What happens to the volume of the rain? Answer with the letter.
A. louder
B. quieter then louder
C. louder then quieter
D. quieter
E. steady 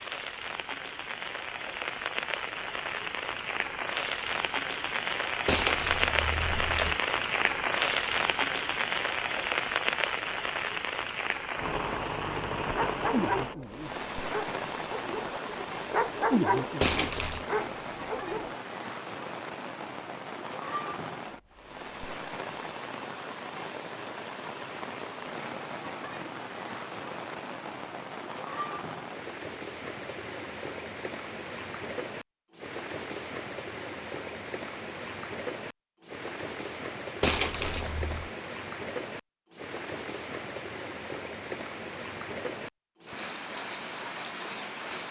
D.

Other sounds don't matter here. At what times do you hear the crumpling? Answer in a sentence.
The crumpling can be heard from 5.5 to 7.0 s, from 16.8 to 17.4 s and from 37.2 to 38.3 s.